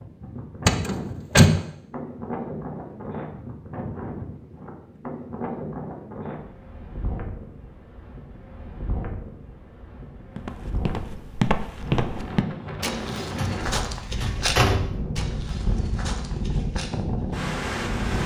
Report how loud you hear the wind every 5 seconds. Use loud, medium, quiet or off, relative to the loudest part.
medium, medium, medium, loud.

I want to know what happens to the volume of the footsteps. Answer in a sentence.
The loudness of the footsteps goes down.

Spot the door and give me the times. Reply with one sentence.
The door can be heard from 0.7 to 1.6 s and from 13.3 to 15.0 s.